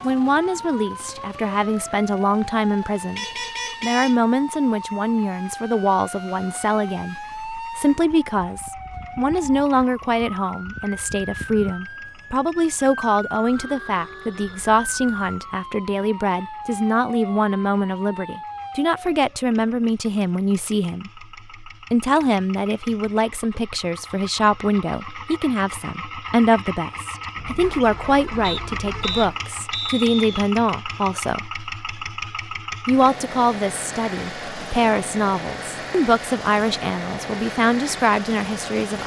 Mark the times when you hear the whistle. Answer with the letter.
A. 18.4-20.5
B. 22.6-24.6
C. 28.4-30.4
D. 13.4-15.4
C.